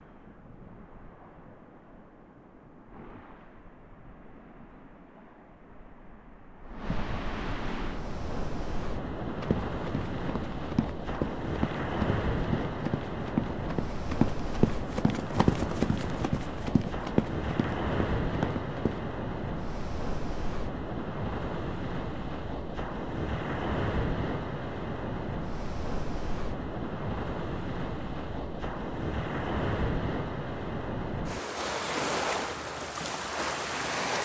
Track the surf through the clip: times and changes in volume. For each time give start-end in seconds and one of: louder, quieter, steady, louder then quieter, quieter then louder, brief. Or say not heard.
0.0-34.1 louder.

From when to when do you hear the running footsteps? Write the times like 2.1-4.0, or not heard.
9.4-19.0.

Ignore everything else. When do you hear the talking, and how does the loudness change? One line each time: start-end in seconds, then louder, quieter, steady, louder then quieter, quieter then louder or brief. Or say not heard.
not heard.